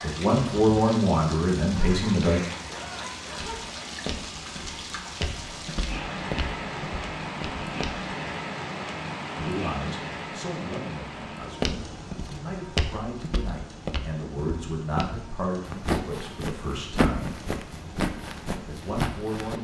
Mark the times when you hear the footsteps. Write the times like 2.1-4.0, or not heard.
3.4-8.1, 11.6-19.5.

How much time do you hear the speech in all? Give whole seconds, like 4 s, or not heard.
11 s.